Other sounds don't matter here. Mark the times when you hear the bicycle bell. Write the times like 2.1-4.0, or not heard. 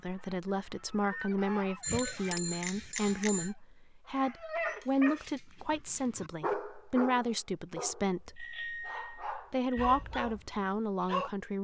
1.8-3.5, 8.3-10.1.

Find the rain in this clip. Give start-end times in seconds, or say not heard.
not heard.